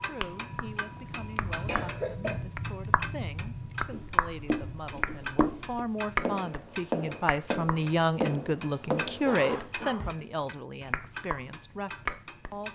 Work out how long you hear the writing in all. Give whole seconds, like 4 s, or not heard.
6 s.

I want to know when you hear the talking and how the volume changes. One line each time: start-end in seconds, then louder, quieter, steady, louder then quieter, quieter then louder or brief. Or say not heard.
0.0-12.6 louder then quieter.